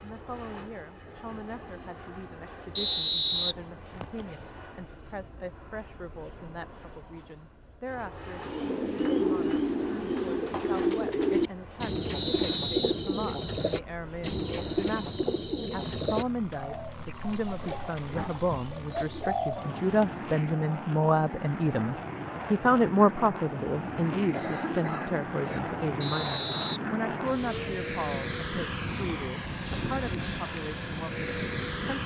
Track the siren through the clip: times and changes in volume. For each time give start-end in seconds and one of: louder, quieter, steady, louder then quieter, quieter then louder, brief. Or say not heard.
not heard.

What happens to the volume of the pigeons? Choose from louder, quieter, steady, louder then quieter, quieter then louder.
quieter.